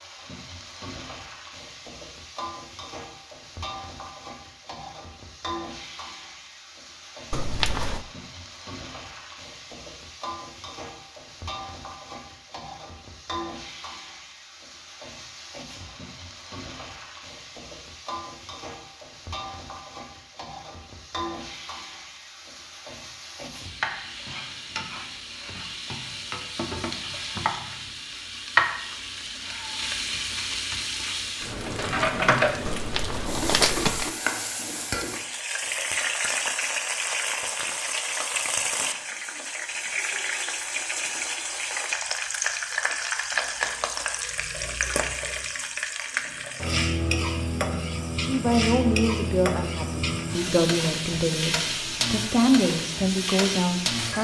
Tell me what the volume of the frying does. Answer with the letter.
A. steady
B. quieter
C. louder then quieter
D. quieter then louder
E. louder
E.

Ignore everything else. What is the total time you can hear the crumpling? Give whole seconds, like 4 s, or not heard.
2 s.